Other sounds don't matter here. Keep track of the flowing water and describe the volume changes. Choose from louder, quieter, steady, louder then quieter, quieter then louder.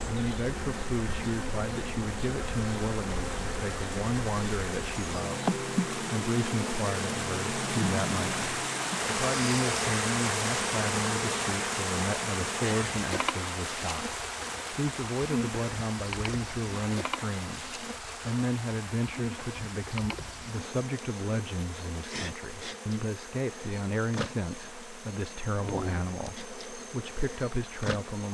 louder then quieter.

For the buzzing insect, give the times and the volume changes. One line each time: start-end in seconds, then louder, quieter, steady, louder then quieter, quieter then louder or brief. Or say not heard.
0.0-28.2 quieter.